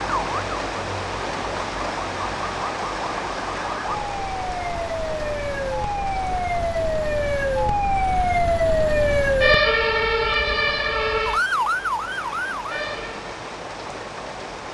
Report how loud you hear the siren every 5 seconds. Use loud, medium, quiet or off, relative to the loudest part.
medium, loud, loud.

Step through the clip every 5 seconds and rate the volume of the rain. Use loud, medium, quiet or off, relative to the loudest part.
loud, medium, medium.